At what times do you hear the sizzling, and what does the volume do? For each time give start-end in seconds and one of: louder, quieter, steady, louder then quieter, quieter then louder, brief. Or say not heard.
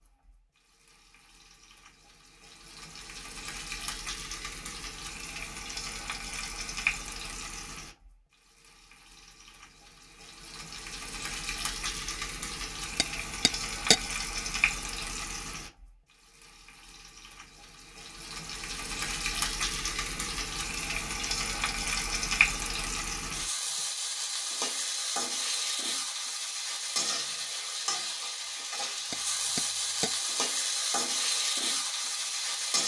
0.1-32.8 louder.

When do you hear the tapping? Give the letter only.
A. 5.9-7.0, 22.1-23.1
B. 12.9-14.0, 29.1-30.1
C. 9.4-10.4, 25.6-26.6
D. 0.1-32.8
B.